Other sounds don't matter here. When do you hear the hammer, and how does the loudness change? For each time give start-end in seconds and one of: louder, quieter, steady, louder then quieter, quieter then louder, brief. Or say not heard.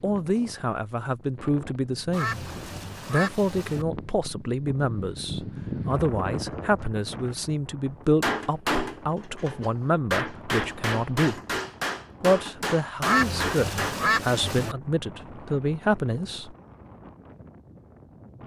8.2-13.9 steady.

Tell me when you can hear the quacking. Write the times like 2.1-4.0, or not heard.
2.1-3.9, 13.0-14.8.